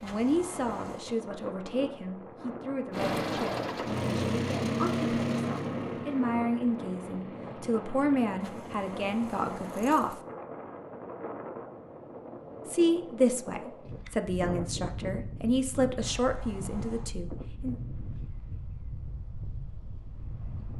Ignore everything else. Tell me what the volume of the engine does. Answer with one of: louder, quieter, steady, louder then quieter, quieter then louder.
quieter.